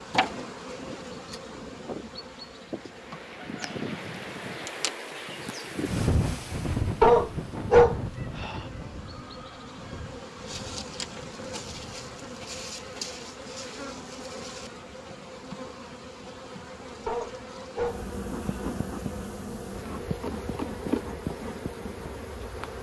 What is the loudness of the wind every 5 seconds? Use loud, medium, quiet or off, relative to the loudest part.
medium, loud, quiet, off, off.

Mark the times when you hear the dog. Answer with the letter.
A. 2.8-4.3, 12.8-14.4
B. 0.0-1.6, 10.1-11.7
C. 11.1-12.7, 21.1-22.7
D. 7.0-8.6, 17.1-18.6
D.